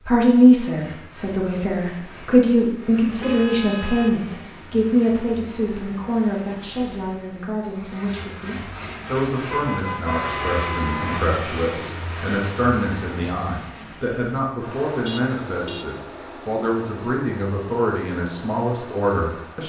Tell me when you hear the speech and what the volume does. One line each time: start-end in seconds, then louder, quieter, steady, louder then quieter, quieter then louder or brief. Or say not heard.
0.1-19.6 quieter.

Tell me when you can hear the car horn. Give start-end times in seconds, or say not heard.
3.1-4.2, 9.5-11.2, 15.1-15.9.